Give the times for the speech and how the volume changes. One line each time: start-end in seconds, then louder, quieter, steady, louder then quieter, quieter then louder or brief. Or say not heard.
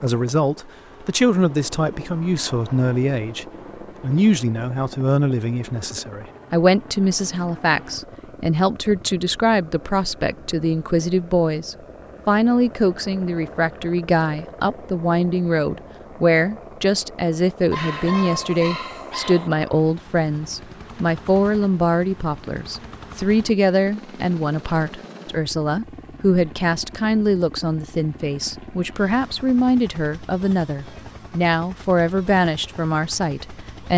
0.0-33.9 steady.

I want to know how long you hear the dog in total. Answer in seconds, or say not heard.
2 s.